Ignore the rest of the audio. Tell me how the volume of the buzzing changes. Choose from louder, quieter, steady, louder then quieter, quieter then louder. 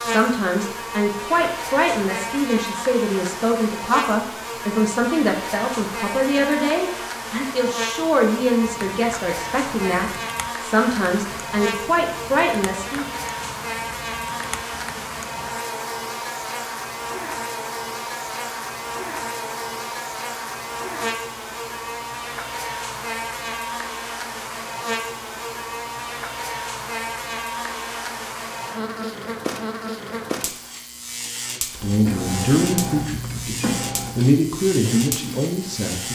steady.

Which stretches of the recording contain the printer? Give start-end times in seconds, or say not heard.
31.8-36.0.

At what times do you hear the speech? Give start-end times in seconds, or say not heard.
0.0-13.1, 31.7-36.0.